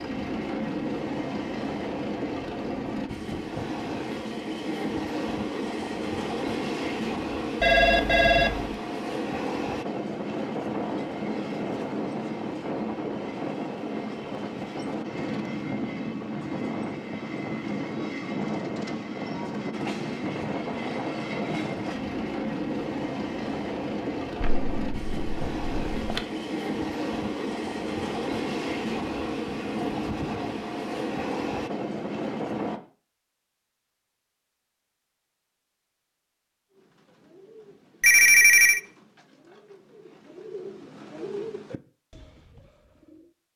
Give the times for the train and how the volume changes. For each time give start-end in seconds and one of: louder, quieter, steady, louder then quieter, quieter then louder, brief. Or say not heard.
0.0-32.8 steady.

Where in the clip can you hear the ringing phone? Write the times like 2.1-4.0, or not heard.
7.6-8.8, 24.4-26.2, 38.0-38.8.